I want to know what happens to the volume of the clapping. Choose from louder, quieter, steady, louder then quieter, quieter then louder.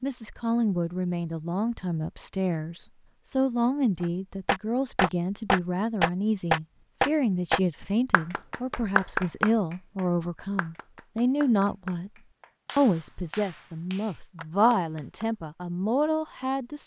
quieter.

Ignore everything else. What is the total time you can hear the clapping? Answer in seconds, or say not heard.
11 s.